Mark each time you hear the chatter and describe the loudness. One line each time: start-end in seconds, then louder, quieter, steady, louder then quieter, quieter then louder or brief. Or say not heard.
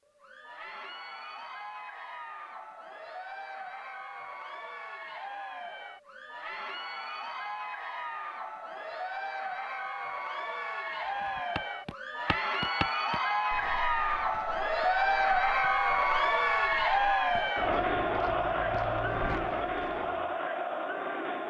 0.1-21.4 louder.